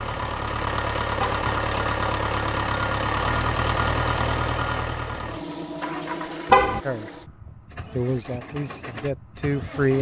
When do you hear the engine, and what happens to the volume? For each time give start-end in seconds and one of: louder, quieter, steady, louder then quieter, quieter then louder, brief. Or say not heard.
0.0-9.9 quieter.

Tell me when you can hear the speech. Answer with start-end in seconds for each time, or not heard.
6.8-7.2, 7.9-9.9.